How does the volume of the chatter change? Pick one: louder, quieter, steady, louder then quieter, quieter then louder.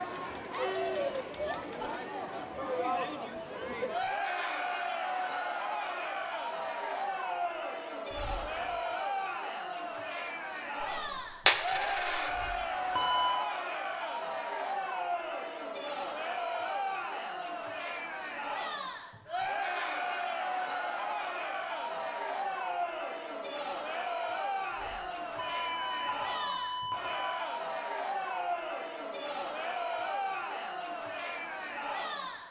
steady.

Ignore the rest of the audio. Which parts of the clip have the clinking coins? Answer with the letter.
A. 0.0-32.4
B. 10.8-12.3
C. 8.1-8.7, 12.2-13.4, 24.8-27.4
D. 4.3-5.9
B.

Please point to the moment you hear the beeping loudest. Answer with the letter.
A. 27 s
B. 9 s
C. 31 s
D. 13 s
D.